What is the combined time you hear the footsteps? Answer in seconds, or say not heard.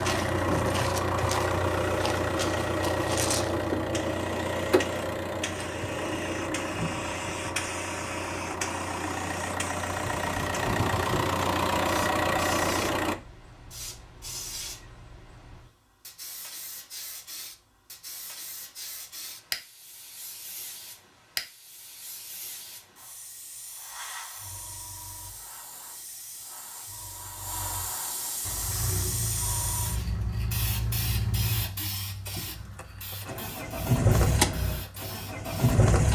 not heard.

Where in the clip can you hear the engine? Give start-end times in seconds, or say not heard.
0.0-13.2, 28.4-36.1.